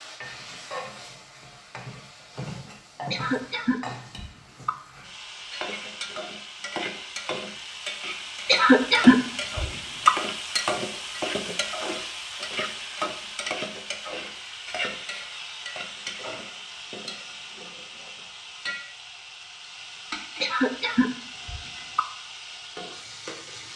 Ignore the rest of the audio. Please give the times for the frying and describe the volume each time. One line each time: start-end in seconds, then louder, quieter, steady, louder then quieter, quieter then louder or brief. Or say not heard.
0.0-23.7 louder then quieter.